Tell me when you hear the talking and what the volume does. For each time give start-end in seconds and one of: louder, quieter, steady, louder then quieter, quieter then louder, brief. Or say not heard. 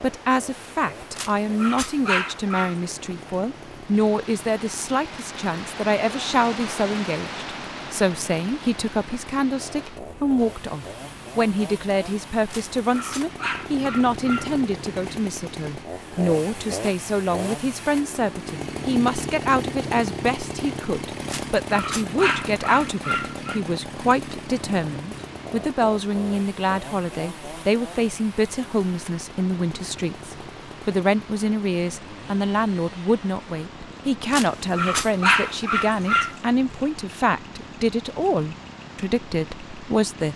0.0-40.3 steady.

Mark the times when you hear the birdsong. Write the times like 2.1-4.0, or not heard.
not heard.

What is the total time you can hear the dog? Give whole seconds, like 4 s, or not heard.
8 s.